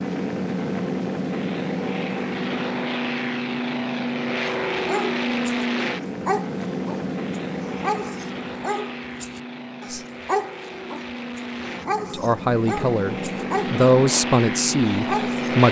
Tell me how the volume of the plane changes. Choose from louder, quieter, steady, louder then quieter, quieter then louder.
quieter then louder.